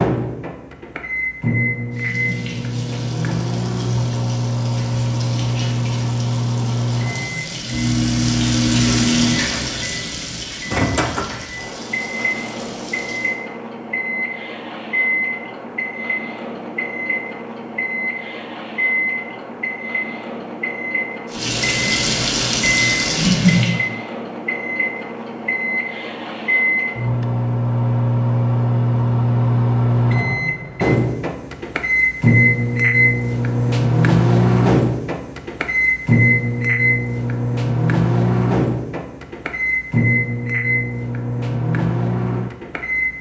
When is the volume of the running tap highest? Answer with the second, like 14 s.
23 s.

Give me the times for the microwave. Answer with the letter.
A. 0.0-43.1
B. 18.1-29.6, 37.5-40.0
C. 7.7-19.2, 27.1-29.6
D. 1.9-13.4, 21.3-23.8
A.